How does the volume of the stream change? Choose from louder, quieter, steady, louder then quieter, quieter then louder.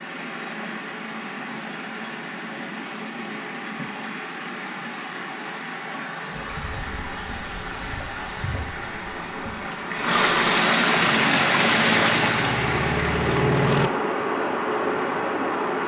louder then quieter.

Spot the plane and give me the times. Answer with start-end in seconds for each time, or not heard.
11.2-13.9.